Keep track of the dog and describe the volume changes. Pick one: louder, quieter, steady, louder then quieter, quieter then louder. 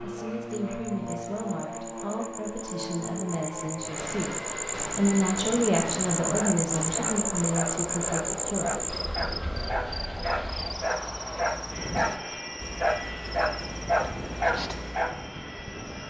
louder.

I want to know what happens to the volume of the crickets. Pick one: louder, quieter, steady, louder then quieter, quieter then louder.
louder then quieter.